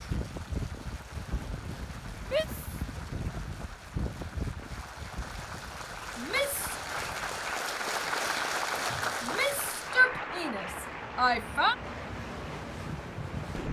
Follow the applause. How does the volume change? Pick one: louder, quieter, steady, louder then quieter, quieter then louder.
louder then quieter.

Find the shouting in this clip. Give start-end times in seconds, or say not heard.
2.2-2.6, 6.2-6.8, 9.2-11.8.